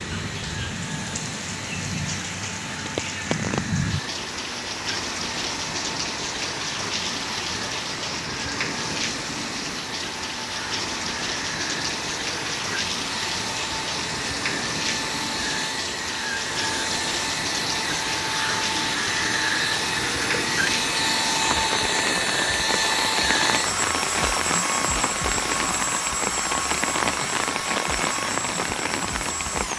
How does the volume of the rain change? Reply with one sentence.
The loudness of the rain stays about the same.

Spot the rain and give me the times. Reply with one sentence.
The rain can be heard from 0.0 to 29.7 s.